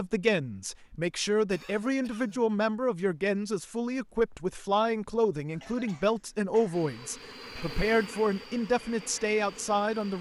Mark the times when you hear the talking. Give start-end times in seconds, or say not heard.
0.0-10.1.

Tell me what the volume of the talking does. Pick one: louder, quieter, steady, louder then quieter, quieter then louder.
steady.